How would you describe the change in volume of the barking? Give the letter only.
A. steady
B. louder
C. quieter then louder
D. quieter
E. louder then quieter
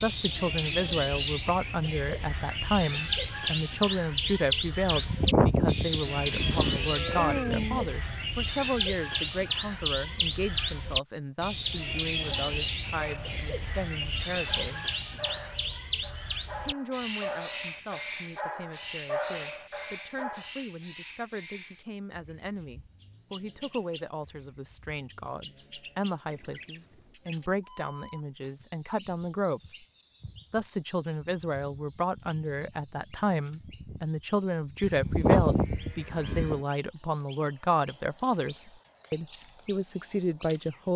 B.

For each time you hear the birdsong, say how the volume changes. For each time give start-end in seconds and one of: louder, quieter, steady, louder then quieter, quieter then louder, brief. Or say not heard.
0.0-40.9 quieter.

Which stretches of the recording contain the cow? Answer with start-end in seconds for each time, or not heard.
4.9-7.8, 34.8-36.6.